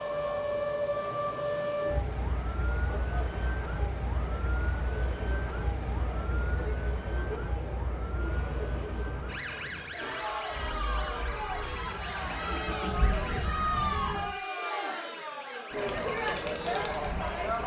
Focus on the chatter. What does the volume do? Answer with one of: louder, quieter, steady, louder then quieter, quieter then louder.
louder.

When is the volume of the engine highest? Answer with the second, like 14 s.
13 s.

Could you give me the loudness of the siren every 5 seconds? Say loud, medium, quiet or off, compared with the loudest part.
loud, medium, medium, quiet.